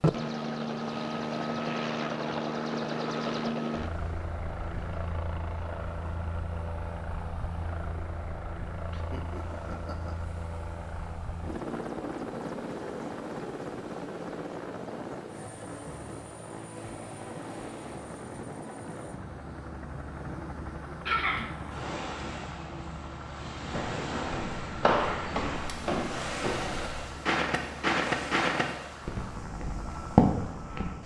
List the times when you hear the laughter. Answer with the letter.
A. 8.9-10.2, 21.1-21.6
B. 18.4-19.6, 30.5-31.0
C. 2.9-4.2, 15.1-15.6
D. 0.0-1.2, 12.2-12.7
A.